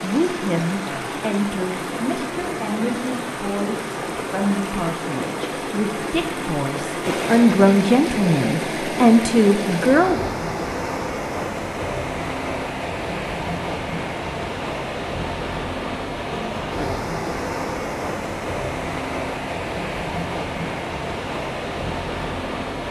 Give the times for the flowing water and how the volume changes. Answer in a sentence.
You can hear the flowing water from 0.0 to 22.8 s, at a steady volume.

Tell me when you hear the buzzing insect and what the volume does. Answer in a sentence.
The buzzing insect can't be heard in this clip.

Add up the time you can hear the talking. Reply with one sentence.
You can hear the talking for 10 seconds altogether.